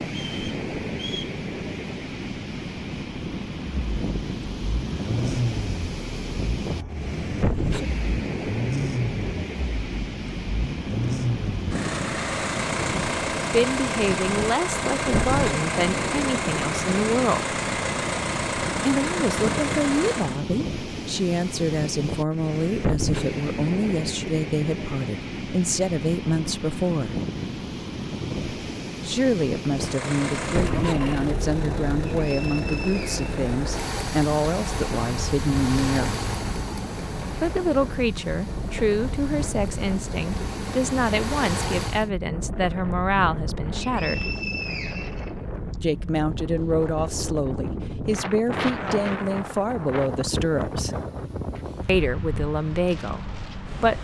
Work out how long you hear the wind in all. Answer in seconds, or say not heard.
54 s.